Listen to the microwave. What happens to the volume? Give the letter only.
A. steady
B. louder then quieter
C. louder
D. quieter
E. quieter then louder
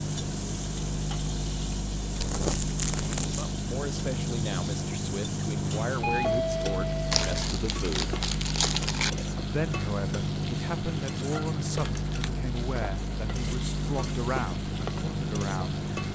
A.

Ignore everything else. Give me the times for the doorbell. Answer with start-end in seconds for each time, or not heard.
6.0-7.3.